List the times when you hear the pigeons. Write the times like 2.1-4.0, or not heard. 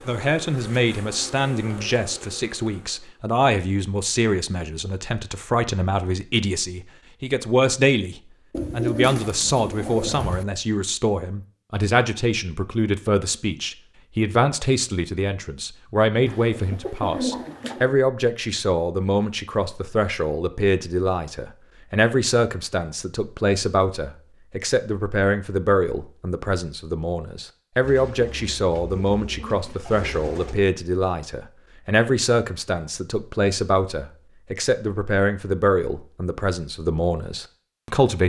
8.5-10.4, 16.2-17.9, 27.8-30.6.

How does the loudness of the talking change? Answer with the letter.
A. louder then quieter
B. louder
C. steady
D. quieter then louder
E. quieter
C.